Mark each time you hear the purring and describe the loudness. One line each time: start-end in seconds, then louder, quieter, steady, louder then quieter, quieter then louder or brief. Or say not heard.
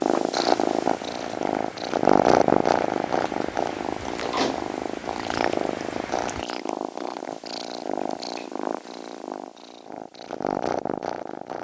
0.0-11.5 quieter.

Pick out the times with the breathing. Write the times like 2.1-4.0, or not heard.
not heard.